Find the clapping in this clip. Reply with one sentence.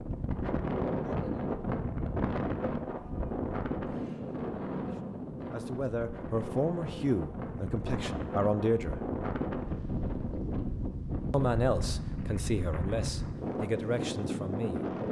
You can't hear the clapping here.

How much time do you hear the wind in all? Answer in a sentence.
The wind can be heard for 15 seconds in total.